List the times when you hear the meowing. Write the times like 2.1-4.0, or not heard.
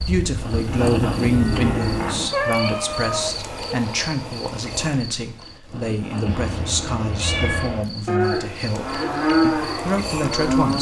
1.5-3.3, 6.2-7.8.